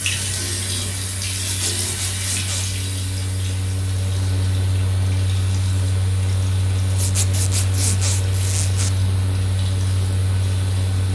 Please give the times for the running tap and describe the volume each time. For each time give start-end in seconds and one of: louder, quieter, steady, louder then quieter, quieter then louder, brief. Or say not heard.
0.0-11.0 quieter.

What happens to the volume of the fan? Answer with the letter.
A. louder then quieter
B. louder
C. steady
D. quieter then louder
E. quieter
B.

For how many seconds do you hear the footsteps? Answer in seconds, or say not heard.
not heard.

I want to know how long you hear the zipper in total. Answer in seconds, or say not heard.
3 s.